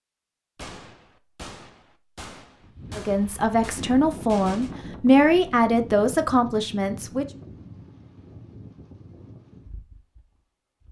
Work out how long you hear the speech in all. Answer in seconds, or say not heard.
4 s.